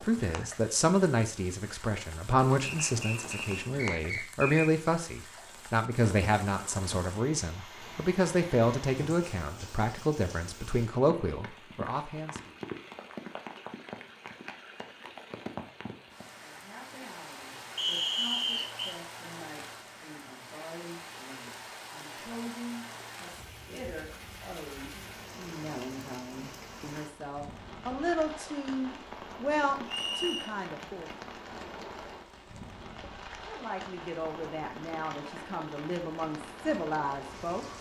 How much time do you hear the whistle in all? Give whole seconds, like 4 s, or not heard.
4 s.